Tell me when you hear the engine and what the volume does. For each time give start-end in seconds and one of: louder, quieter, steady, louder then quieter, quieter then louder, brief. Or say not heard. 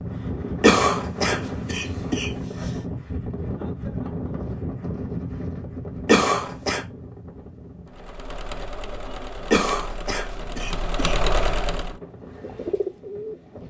7.8-11.9 louder.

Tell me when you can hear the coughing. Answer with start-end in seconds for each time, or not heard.
0.6-2.3, 6.0-6.8, 9.5-11.2.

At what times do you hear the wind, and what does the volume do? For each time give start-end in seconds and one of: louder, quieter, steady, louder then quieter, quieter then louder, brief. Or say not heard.
0.0-13.6 quieter.